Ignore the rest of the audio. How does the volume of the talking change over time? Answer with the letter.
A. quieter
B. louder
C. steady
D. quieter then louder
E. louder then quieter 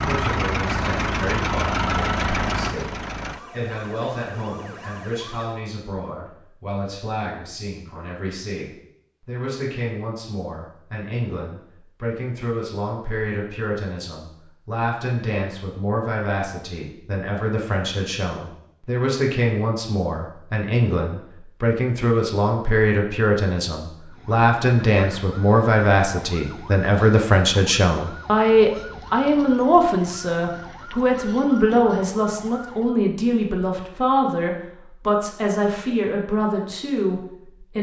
B.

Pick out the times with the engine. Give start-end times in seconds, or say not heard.
0.0-3.5.